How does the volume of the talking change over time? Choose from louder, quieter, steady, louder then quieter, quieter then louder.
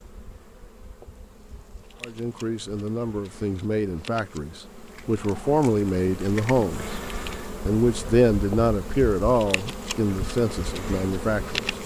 louder then quieter.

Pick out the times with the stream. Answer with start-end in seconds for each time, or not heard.
not heard.